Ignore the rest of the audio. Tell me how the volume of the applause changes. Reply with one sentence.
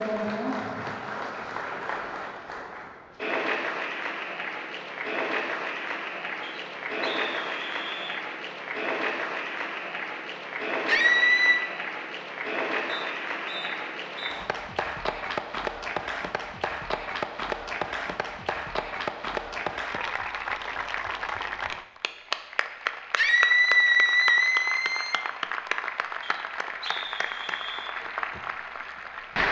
The loudness of the applause stays about the same.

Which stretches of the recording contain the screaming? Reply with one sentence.
The screaming can be heard from 10.8 to 11.6 s and from 23.1 to 25.1 s.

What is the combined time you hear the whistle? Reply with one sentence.
You can hear the whistle for 5 seconds altogether.